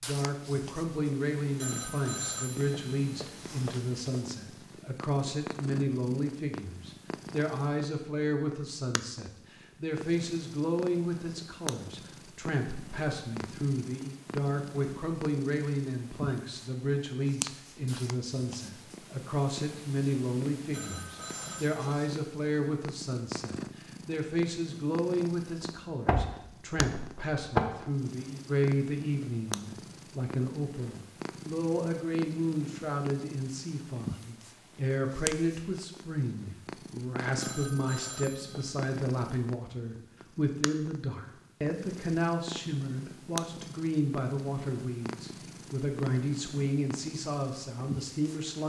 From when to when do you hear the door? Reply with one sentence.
You can hear the door from 25.6 to 27.6 s.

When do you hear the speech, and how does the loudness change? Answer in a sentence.
You can hear the speech from 0.1 to 48.6 s, at a steady volume.